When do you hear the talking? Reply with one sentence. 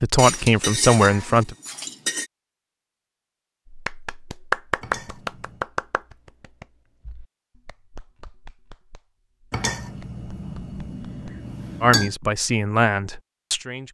The talking can be heard from 0.0 to 1.6 s and from 11.8 to 13.8 s.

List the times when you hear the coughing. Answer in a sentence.
The coughing can't be heard in this clip.